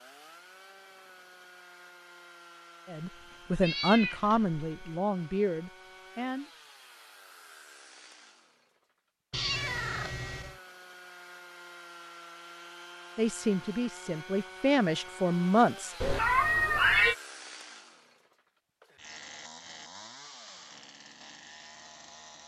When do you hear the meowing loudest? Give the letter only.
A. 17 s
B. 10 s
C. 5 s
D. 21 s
A.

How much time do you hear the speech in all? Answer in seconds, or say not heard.
6 s.